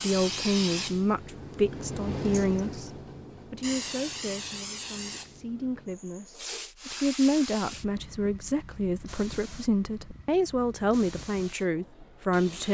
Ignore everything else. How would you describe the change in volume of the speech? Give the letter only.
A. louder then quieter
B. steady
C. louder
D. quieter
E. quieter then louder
E.